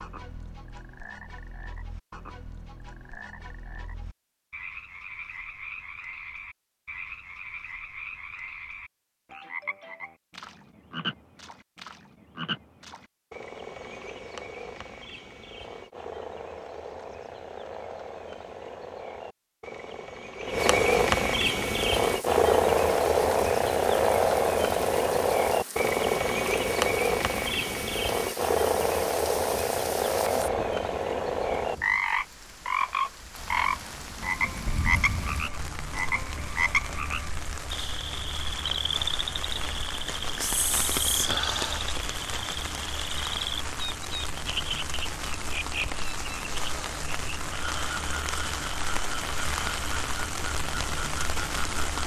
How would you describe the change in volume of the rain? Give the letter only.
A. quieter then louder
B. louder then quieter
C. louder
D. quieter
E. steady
C.